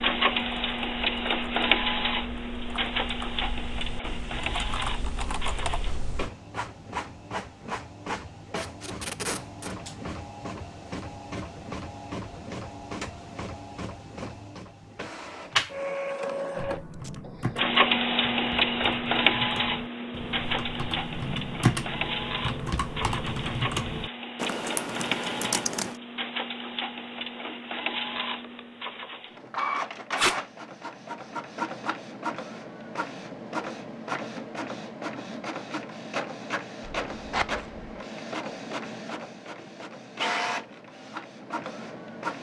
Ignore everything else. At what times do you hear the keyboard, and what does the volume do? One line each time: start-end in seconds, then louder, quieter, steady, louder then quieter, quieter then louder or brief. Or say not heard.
0.0-6.3 louder
16.6-26.0 louder.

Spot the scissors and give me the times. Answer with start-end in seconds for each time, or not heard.
36.8-37.9.